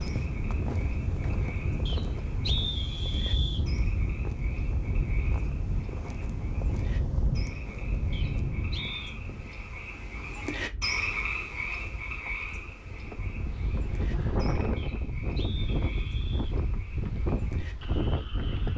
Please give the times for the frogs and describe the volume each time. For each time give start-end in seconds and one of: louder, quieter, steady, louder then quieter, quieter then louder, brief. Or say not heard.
0.0-18.7 louder then quieter.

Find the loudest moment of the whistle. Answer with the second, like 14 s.
3 s.